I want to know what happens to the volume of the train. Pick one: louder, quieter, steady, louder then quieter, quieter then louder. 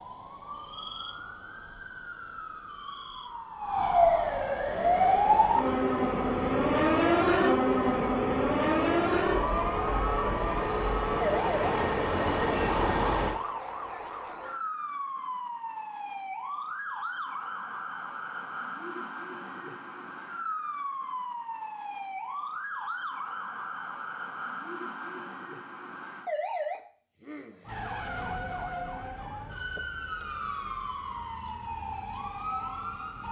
louder.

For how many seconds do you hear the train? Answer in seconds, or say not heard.
9 s.